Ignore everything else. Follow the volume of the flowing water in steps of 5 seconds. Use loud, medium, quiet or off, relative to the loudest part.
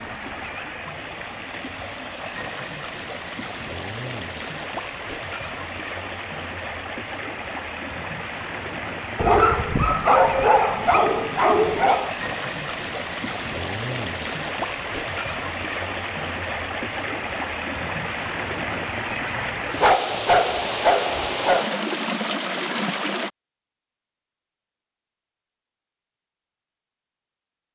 medium, medium, loud, loud, loud, off.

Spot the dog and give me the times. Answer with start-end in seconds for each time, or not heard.
9.2-12.1, 19.8-21.6.